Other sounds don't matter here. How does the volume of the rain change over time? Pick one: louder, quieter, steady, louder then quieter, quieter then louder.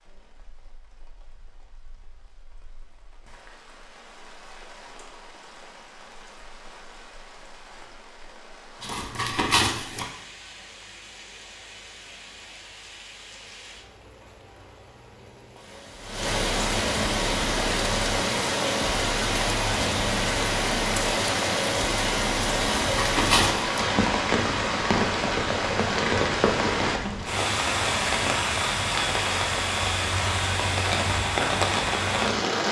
louder.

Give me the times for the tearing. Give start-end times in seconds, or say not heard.
8.8-10.1, 22.8-23.8.